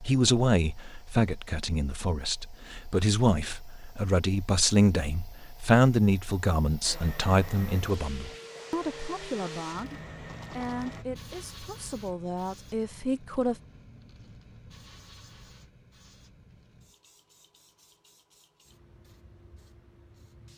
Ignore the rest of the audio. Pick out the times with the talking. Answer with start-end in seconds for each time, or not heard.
0.0-13.6.